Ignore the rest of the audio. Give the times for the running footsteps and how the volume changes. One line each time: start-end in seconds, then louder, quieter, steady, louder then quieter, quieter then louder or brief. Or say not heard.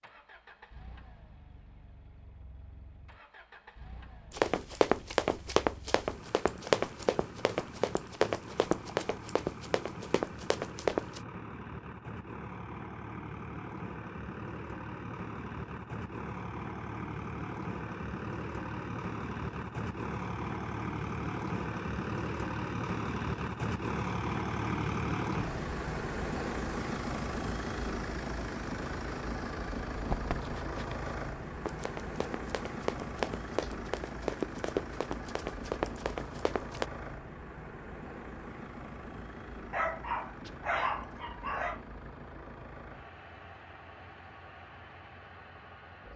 4.3-11.2 quieter
29.9-36.9 louder.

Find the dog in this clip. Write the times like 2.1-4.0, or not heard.
39.7-41.8.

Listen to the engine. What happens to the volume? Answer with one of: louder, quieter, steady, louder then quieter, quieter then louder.
louder then quieter.